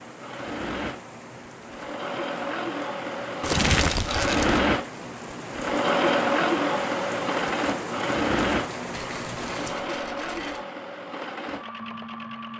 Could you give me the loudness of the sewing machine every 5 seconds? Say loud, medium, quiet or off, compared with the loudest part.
loud, loud, medium.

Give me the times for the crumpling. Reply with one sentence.
You can hear the crumpling from 3.4 to 4.7 s.